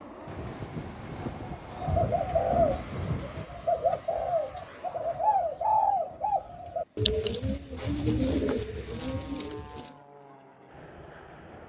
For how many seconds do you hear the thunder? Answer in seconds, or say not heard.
3 s.